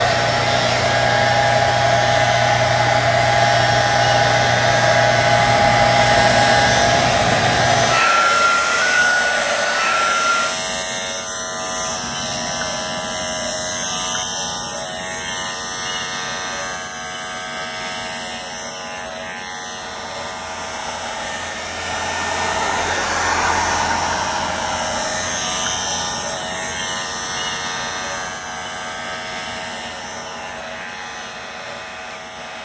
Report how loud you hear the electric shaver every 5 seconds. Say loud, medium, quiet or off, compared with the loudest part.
loud, loud, loud, loud, loud, loud, medium.